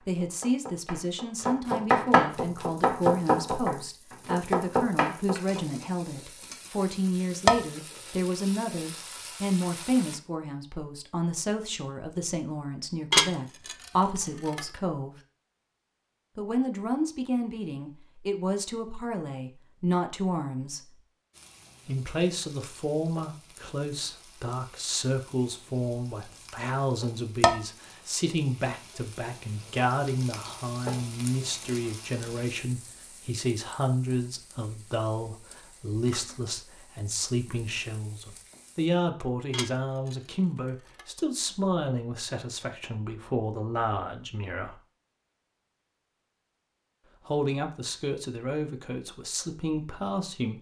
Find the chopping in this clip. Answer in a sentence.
You can hear the chopping from 0.0 to 5.6 s.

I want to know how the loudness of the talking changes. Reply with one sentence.
The loudness of the talking stays about the same.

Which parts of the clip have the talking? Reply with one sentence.
The talking can be heard from 0.0 to 15.2 s, from 16.4 to 21.0 s, from 21.9 to 44.8 s and from 47.2 to 50.5 s.